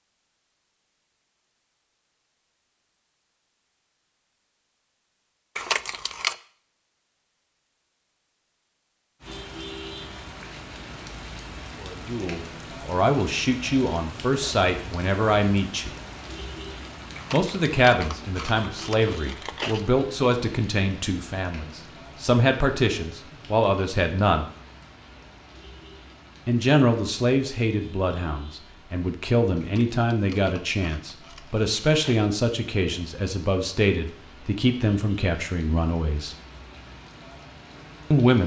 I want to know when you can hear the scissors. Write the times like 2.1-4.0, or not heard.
5.5-6.3, 17.1-19.9, 29.6-32.3.